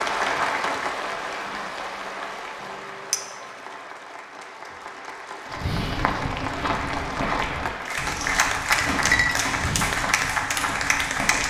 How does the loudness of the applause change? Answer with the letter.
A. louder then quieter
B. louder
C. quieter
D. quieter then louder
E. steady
D.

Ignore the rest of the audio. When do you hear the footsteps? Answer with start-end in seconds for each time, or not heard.
5.5-11.4.